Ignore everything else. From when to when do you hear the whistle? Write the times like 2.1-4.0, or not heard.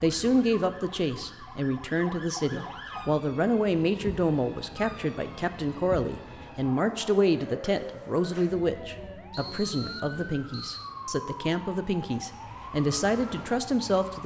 9.3-10.8.